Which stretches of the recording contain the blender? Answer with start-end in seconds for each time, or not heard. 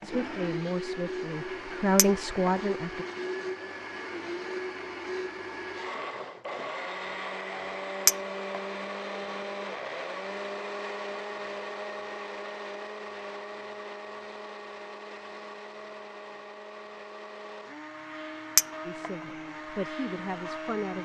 0.0-21.0.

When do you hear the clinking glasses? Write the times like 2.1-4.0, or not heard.
1.9-2.5, 8.1-8.6, 18.6-19.1.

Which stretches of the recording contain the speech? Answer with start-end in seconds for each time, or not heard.
0.0-3.0, 18.9-21.0.